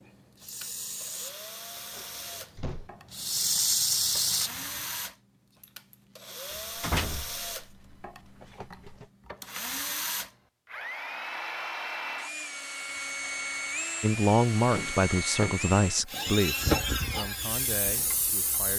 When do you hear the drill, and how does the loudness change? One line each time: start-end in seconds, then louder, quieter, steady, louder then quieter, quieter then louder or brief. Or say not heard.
0.0-18.7 louder.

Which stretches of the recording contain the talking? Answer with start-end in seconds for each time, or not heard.
14.0-18.7.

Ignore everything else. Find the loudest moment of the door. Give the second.
7 s.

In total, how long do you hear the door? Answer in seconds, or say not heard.
5 s.